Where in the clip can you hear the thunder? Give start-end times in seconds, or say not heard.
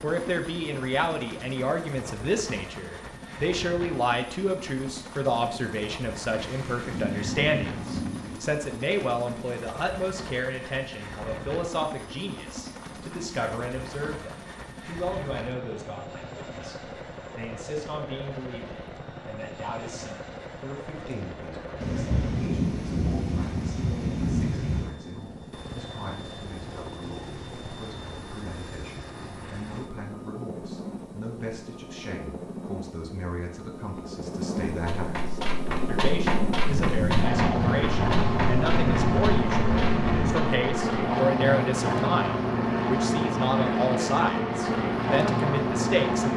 6.3-8.4, 21.8-24.9, 36.6-40.4.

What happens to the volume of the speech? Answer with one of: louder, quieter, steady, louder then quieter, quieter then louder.
quieter then louder.